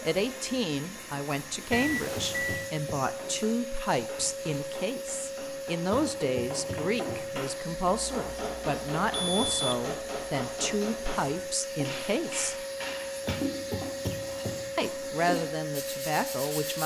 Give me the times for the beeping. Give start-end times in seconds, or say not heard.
1.7-2.7, 9.1-9.8.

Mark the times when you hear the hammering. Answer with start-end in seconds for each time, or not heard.
3.1-13.3.